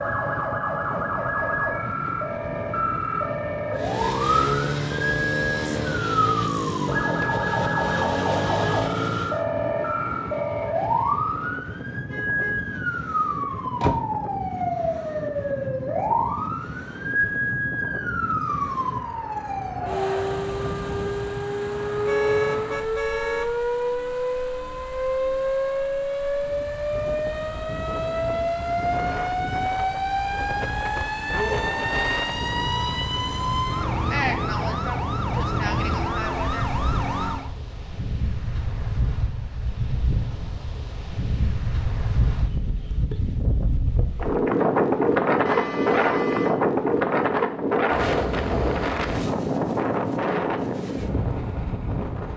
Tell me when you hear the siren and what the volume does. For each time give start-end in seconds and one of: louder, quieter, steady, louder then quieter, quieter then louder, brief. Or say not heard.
0.0-37.5 steady.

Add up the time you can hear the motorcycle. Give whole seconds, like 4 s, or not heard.
6 s.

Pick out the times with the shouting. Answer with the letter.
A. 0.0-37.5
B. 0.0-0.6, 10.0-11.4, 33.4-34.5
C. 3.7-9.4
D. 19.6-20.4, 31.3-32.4
D.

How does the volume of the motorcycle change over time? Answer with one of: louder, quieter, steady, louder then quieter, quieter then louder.
steady.